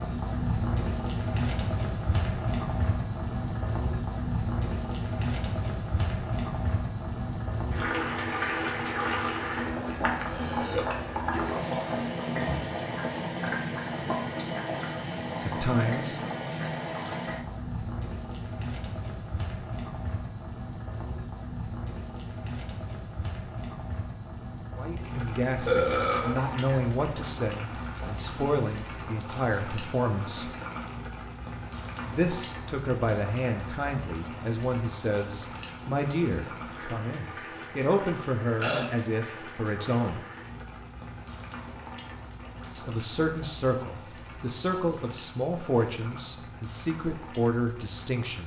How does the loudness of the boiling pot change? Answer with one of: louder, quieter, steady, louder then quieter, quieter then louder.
quieter.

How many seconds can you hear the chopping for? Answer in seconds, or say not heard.
not heard.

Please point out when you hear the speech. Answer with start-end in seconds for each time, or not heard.
15.4-16.6, 24.8-30.5, 32.0-40.2, 42.8-48.4.